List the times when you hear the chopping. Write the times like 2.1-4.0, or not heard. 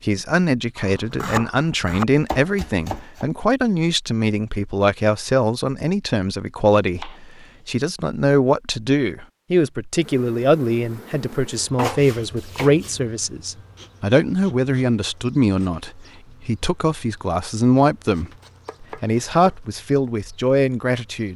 0.8-3.2, 6.8-7.7, 11.8-13.0, 18.1-19.6.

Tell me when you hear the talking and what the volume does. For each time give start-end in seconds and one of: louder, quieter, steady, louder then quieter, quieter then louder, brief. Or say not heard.
0.0-21.3 steady.